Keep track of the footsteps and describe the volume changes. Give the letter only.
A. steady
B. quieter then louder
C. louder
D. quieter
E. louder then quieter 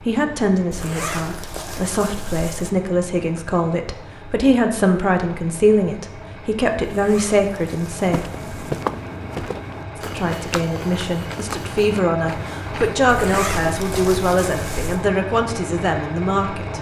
D.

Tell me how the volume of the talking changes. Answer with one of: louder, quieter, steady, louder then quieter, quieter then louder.
steady.